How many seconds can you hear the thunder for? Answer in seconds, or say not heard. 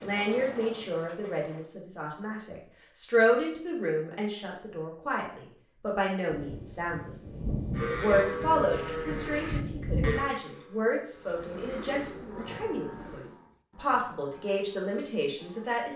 4 s.